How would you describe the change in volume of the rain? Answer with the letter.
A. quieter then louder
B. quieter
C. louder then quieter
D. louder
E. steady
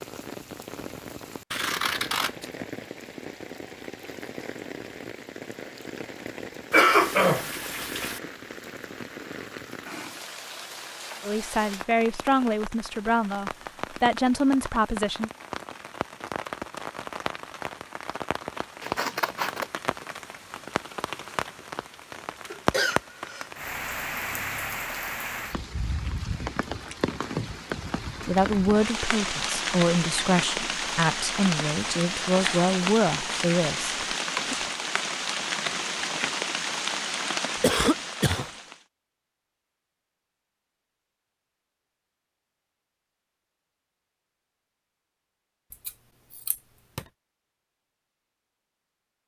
D.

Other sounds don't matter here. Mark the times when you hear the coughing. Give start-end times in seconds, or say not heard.
6.7-8.2, 22.5-23.5, 37.6-38.5.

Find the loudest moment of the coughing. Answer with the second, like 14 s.
7 s.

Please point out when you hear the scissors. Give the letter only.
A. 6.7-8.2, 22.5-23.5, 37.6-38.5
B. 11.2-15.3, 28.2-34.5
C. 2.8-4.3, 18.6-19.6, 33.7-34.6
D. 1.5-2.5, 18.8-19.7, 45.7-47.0
D.